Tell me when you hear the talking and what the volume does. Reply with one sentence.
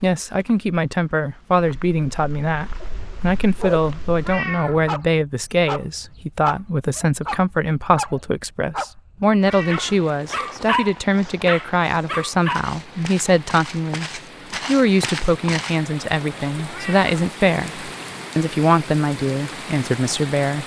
You can hear the talking from 0.0 to 20.6 s, at a steady volume.